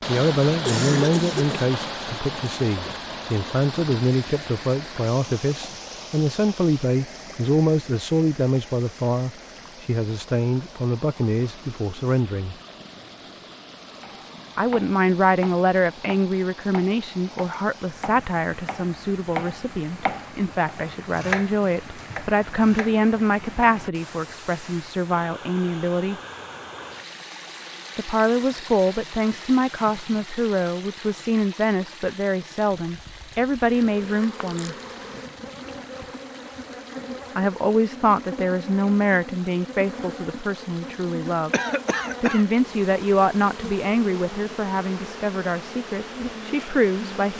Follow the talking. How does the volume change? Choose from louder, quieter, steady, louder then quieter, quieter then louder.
steady.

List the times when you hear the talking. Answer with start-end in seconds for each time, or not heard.
0.1-12.6, 14.6-26.1, 27.9-34.8, 37.4-41.5, 42.2-47.3.